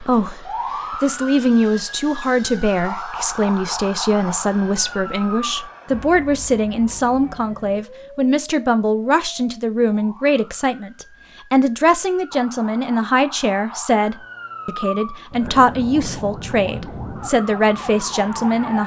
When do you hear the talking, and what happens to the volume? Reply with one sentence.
You can hear the talking from 0.0 to 18.8 s, at a steady volume.